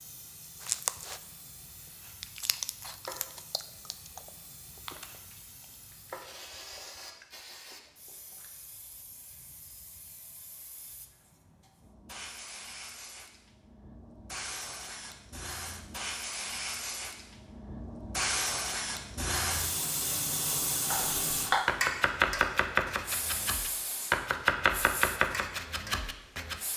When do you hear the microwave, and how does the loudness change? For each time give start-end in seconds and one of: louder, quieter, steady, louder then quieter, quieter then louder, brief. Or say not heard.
not heard.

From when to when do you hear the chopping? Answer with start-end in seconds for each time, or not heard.
20.9-26.6.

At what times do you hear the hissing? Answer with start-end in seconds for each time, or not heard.
0.0-26.7.